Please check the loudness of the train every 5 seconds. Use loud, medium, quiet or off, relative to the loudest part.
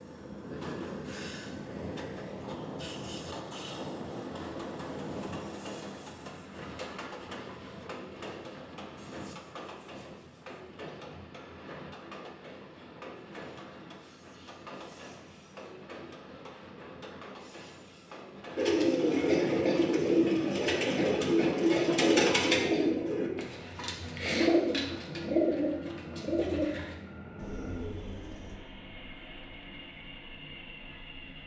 loud, loud, medium, medium, medium, medium, medium.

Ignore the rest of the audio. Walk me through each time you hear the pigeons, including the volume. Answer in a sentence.
You can hear the pigeons from 18.6 to 28.6 s, getting quieter.